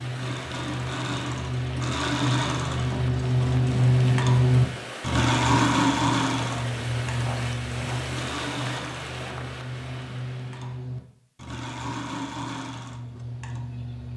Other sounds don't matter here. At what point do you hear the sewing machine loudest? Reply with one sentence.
The volume of the sewing machine peaks at 4 seconds.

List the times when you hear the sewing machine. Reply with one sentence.
You can hear the sewing machine from 0.0 to 14.1 s.